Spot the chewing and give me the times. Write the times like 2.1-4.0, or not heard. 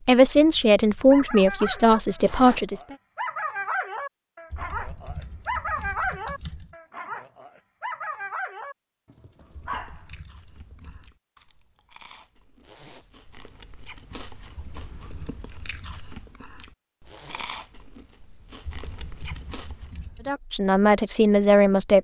9.5-20.1.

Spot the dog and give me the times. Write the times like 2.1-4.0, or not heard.
1.1-10.2.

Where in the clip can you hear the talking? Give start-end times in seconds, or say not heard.
0.1-3.0, 20.2-21.9.